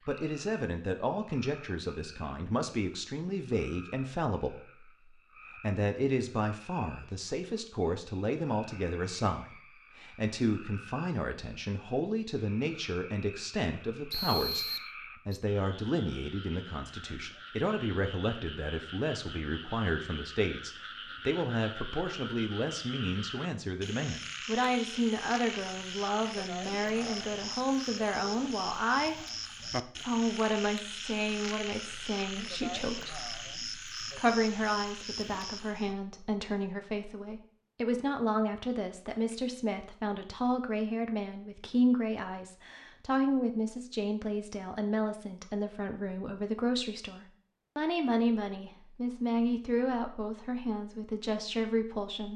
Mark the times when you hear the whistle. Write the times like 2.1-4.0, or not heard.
14.1-15.4.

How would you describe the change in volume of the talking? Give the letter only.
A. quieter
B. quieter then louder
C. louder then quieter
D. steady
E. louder
D.